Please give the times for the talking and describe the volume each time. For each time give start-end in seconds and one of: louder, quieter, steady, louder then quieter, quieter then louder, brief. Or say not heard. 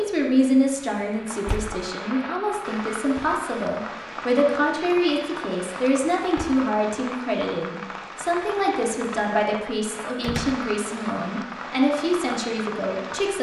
0.0-13.3 steady.